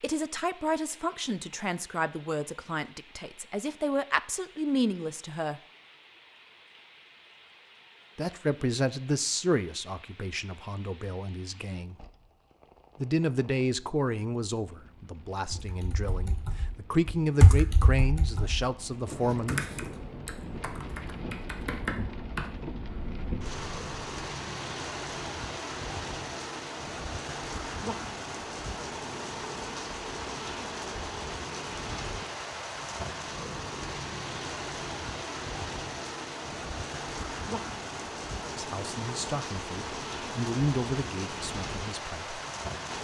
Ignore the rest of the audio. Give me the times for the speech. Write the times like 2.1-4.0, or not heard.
0.0-5.6, 8.2-11.9, 13.0-19.6, 38.5-42.4.